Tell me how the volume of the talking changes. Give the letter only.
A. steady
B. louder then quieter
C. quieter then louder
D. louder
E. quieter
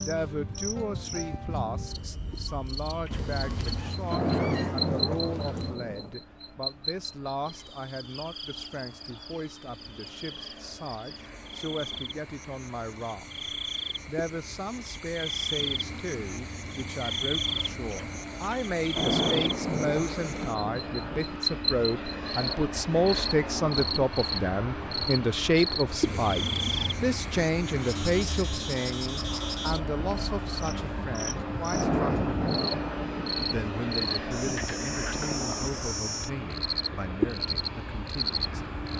B.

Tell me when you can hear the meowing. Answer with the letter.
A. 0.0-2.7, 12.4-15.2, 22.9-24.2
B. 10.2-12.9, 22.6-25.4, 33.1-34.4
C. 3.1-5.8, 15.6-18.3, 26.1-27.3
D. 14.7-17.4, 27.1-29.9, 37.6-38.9
C.